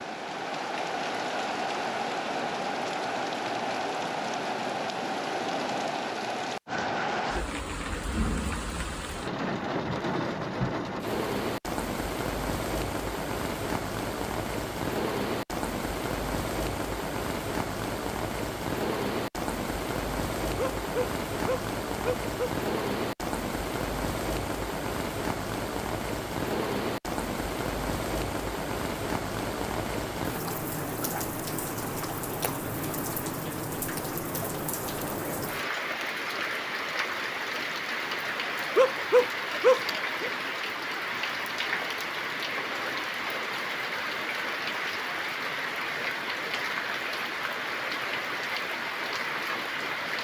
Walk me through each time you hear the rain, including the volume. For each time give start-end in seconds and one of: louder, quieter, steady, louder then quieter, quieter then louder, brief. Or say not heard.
0.0-50.1 steady.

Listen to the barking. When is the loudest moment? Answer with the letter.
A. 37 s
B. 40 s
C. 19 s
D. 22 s
B.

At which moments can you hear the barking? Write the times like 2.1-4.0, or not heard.
20.6-22.6, 38.8-40.3.